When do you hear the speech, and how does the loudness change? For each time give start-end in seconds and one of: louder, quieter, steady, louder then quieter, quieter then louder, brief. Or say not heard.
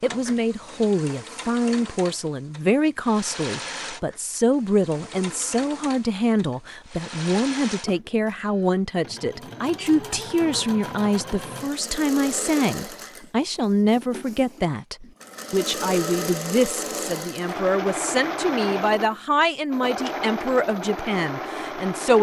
0.0-22.1 steady.